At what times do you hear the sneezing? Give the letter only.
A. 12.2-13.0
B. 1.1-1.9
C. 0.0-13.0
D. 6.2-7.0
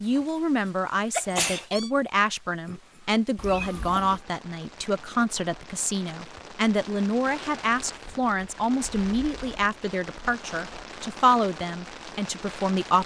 B.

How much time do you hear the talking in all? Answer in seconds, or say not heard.
13 s.